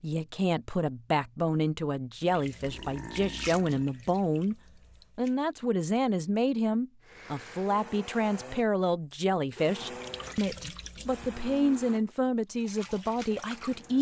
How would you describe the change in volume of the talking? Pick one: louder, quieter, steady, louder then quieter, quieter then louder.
steady.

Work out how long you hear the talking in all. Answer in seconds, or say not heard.
13 s.